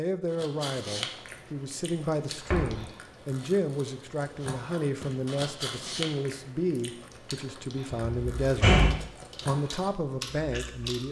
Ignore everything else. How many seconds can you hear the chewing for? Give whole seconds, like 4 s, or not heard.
11 s.